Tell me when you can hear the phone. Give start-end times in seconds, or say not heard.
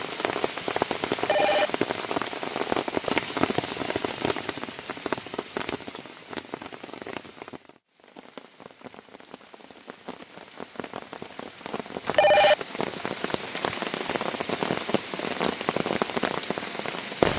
1.1-1.7, 12.1-12.6.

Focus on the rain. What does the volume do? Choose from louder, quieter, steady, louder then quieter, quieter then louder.
quieter then louder.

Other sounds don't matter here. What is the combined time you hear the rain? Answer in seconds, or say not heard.
17 s.